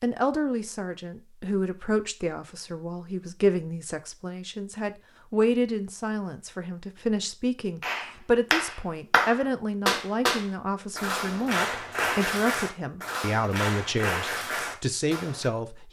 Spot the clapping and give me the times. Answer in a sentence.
You can hear the clapping from 7.8 to 15.5 s.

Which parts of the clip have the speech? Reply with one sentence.
You can hear the speech from 0.0 to 15.8 s.